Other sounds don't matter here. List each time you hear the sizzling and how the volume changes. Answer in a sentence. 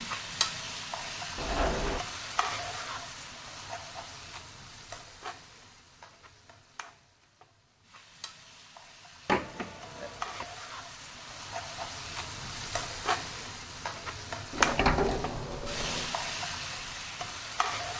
The sizzling can be heard from 0.0 to 17.9 s, getting quieter then louder.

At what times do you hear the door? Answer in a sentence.
You can hear the door from 1.4 to 2.0 s, from 9.2 to 10.4 s and from 14.5 to 16.1 s.